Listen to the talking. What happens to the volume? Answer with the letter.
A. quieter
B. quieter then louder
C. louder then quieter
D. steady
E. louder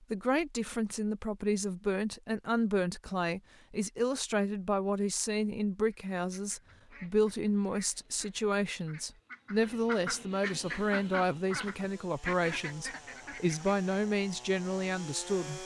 D.